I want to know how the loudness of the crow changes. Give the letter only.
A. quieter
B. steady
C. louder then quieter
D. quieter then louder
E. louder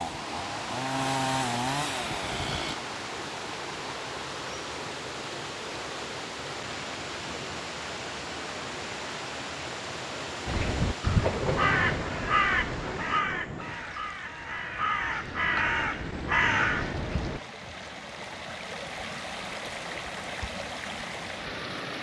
D.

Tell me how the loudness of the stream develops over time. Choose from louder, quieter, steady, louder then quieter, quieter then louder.
quieter then louder.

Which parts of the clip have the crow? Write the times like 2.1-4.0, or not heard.
10.4-17.4.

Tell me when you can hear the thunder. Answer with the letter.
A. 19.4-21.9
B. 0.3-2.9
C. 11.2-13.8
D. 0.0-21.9
C.